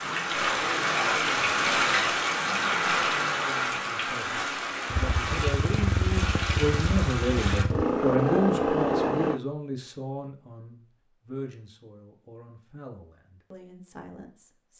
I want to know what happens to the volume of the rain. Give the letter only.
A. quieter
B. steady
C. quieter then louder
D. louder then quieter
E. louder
A.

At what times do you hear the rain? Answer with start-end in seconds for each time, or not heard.
0.0-7.7.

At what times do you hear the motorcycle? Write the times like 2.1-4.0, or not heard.
4.9-9.4.